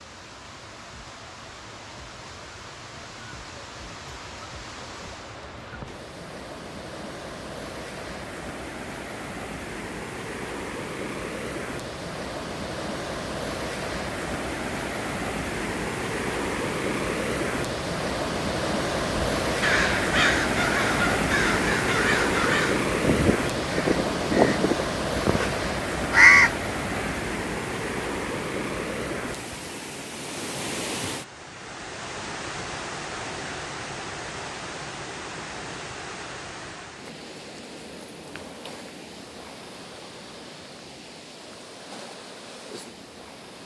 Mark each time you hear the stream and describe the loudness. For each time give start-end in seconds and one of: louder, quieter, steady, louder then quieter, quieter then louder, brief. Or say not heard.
0.0-43.6 louder then quieter.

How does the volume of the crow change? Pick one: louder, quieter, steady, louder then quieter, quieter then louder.
louder.